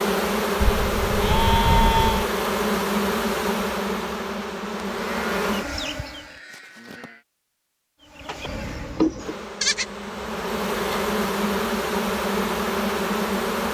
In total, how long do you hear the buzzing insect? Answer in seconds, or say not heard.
12 s.